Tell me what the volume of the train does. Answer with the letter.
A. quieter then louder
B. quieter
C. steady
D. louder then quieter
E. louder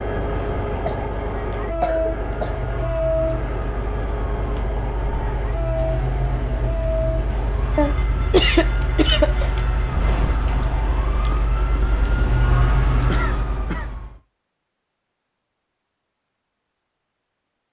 B.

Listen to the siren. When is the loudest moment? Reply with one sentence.
The volume of the siren peaks at 13 seconds.